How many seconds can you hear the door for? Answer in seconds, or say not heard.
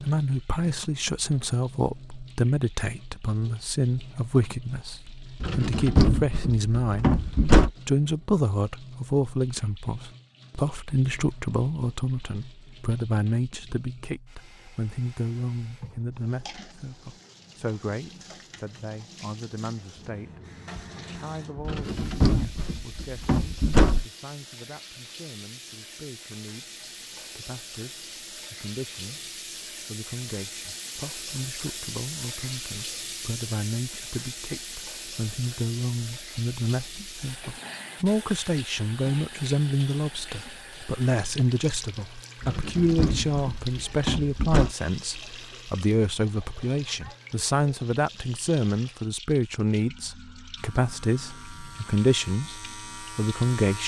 7 s.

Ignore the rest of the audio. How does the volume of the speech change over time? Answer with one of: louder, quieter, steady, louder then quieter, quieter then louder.
quieter then louder.